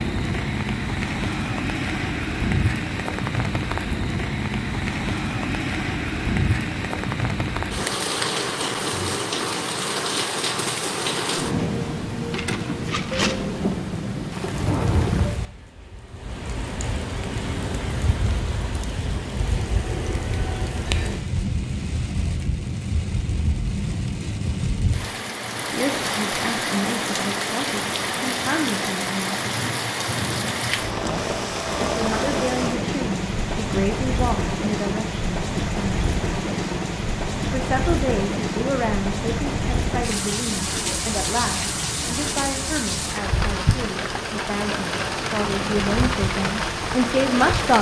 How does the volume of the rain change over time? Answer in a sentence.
The volume of the rain stays about the same.